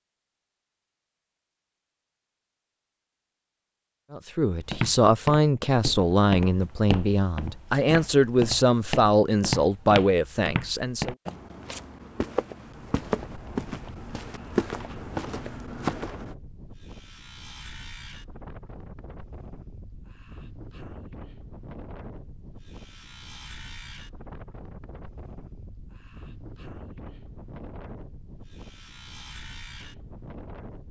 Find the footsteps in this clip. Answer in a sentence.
The footsteps can be heard from 4.7 to 16.4 s.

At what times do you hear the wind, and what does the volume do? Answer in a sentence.
The wind can be heard from 12.7 to 30.8 s, at a steady volume.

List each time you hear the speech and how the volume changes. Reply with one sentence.
The speech can be heard from 4.1 to 11.2 s, at a steady volume.